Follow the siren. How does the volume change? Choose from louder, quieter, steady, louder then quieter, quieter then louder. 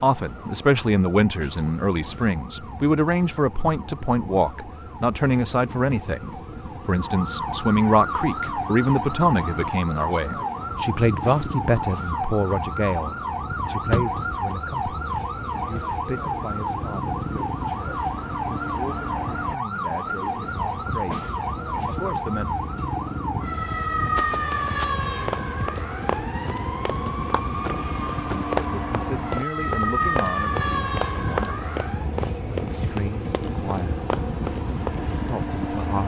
louder.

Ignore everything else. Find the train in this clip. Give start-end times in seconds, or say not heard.
0.0-36.0.